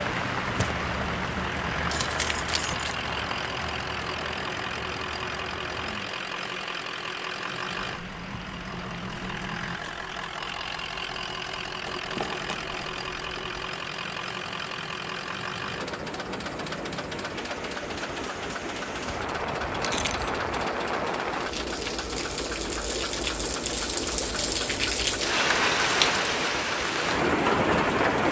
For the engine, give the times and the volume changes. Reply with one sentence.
The engine can be heard from 0.0 to 28.2 s, at a steady volume.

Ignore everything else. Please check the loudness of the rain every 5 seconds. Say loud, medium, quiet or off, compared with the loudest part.
medium, quiet, quiet, quiet, medium, loud.